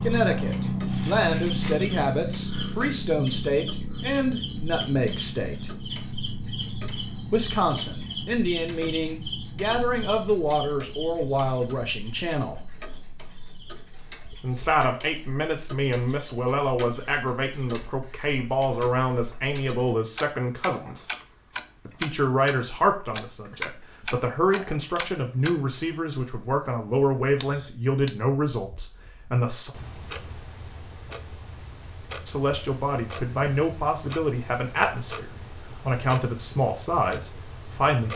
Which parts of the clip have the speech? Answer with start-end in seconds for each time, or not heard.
0.0-5.7, 7.3-12.6, 14.4-21.1, 21.9-29.7, 32.2-38.1.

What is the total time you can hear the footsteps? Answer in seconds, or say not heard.
not heard.